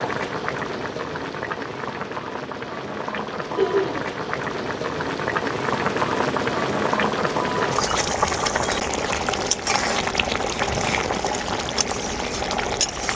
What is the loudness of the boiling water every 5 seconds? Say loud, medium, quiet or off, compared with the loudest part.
medium, loud, loud.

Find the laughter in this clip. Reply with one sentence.
The laughter can be heard from 3.5 to 4.0 s.